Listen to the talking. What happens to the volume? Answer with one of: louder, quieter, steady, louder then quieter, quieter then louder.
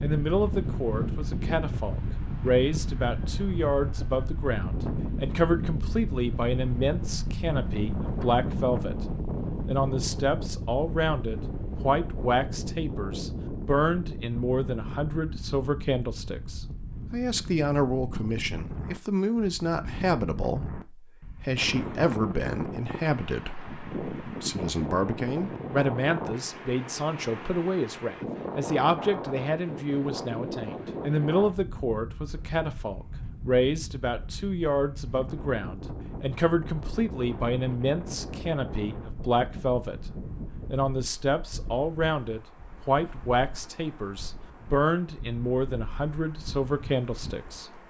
steady.